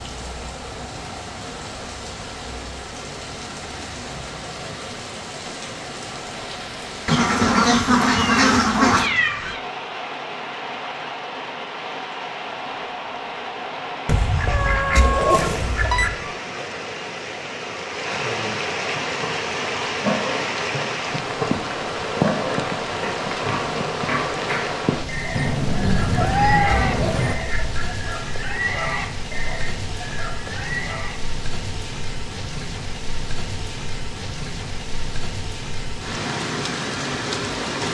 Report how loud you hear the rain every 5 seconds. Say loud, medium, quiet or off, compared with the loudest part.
medium, medium, medium, loud, loud, medium, medium, loud.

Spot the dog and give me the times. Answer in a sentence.
The dog can't be heard in this clip.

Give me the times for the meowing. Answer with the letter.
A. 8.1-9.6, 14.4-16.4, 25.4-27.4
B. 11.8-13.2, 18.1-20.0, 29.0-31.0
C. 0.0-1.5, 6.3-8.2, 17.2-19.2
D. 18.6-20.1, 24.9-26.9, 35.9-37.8
A.